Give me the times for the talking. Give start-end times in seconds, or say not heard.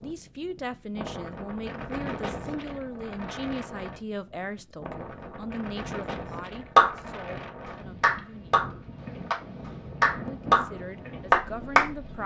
0.0-8.7, 10.2-12.2.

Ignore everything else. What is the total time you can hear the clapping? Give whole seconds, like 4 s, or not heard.
5 s.